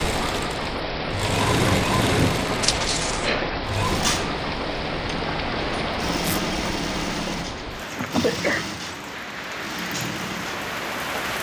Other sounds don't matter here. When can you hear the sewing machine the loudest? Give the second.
2 s.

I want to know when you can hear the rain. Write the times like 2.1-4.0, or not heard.
0.0-11.3.